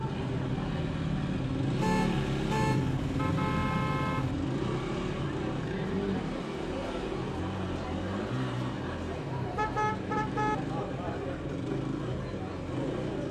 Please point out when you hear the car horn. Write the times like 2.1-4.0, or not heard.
1.8-4.3, 9.6-10.6.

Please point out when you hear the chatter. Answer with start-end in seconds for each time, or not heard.
0.0-13.2.